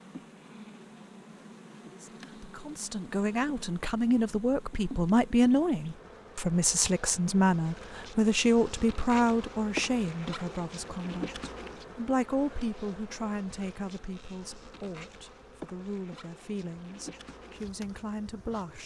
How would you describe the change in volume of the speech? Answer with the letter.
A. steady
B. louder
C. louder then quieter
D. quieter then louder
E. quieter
E.